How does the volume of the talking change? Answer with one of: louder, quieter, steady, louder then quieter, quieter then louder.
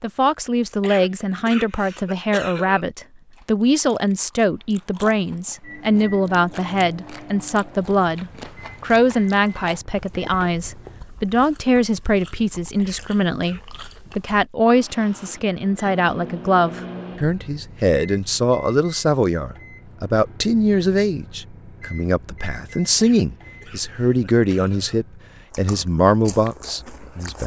steady.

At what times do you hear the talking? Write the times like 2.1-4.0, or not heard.
0.0-27.4.